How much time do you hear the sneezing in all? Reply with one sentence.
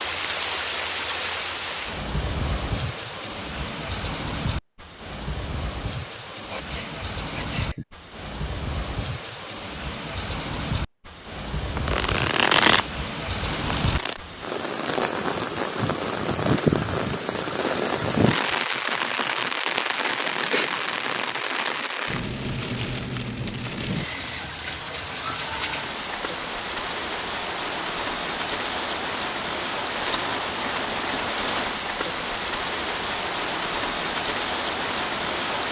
The sneezing can be heard for 2 seconds in total.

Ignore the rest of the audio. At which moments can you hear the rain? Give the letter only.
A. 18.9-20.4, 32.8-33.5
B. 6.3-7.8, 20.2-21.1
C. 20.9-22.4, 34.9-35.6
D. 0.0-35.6
D.